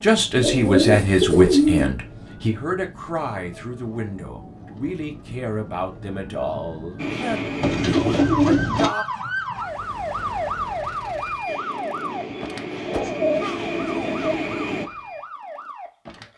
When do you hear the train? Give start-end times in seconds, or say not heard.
7.0-8.4, 11.4-14.9.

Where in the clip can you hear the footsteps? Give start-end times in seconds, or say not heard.
not heard.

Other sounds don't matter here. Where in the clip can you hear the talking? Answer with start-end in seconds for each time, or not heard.
0.0-9.1.